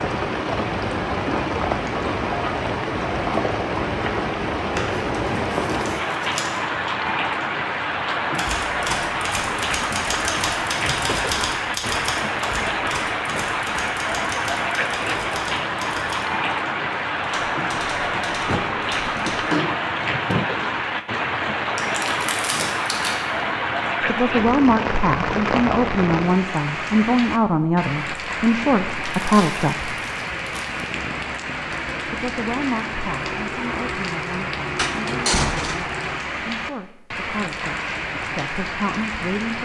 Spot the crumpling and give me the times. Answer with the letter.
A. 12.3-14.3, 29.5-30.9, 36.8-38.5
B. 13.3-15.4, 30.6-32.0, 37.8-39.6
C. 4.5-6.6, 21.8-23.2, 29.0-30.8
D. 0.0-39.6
C.